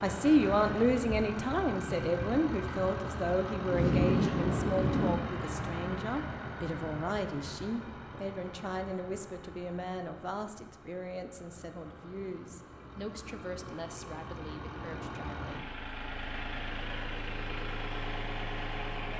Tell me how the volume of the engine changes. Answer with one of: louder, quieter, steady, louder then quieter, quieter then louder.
quieter then louder.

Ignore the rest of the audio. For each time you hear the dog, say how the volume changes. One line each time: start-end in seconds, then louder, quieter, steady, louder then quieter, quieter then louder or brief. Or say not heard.
not heard.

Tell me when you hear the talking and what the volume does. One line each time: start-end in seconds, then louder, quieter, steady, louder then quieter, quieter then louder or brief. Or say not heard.
0.0-15.7 quieter.